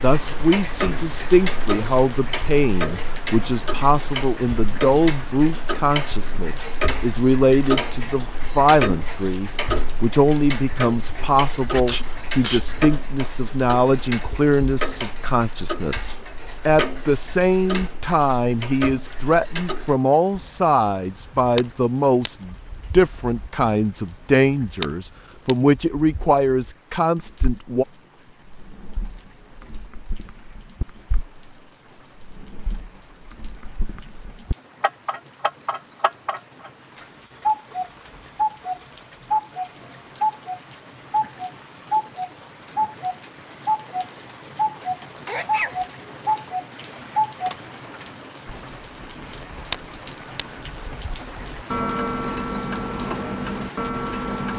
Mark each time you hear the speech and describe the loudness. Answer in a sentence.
You can hear the speech from 0.0 to 27.9 s, at a steady volume.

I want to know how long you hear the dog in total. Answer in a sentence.
You can't hear the dog here.